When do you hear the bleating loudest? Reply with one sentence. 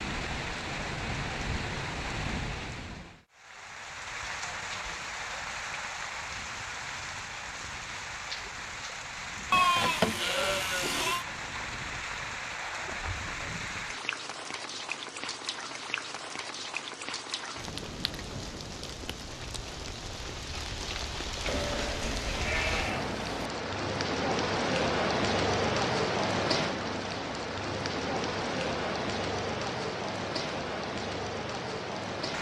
The loudest moment of the bleating is at 10 seconds.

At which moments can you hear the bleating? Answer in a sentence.
The bleating can be heard from 9.5 to 11.2 s and from 21.4 to 23.5 s.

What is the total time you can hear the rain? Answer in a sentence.
The rain can be heard for 32 seconds in total.